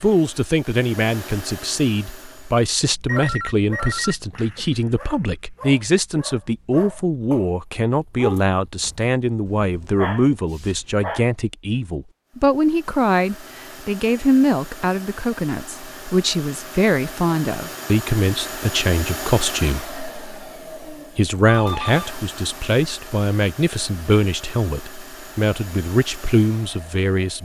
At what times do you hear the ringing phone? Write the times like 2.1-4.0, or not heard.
3.0-4.7, 21.4-22.1.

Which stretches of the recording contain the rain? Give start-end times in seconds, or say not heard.
not heard.